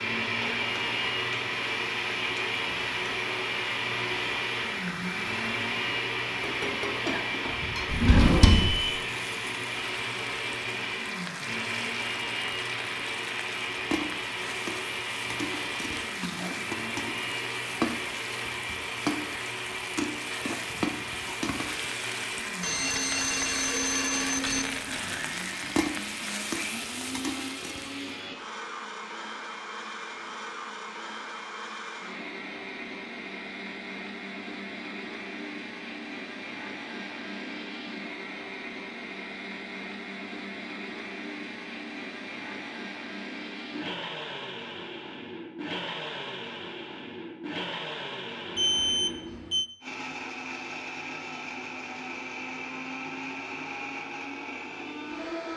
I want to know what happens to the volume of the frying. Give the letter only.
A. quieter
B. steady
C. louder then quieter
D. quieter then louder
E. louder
E.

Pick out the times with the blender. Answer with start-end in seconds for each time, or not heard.
0.0-55.5.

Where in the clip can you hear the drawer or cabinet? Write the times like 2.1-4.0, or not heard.
7.9-8.8.